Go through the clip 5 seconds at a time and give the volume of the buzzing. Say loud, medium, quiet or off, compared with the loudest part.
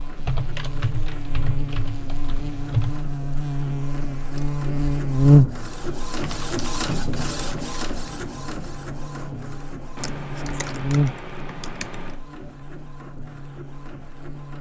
medium, loud, medium.